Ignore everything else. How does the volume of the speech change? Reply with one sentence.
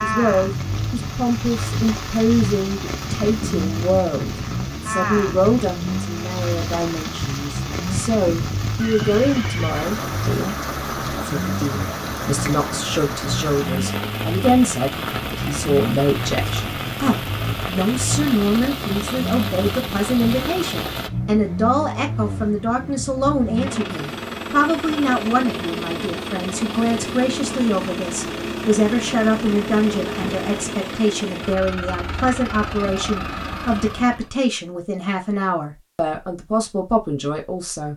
The volume of the speech stays about the same.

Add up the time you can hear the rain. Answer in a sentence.
The rain can be heard for 21 seconds in total.